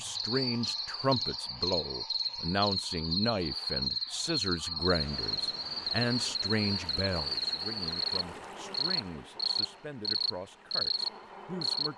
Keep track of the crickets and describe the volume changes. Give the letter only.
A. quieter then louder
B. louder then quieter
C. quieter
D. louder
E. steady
E.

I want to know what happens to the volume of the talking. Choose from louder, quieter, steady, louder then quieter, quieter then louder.
quieter.